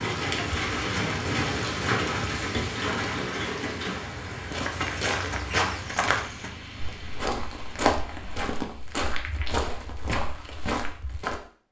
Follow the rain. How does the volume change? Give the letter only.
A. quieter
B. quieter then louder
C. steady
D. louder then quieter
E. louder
A.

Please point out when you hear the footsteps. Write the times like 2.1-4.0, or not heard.
4.5-11.4.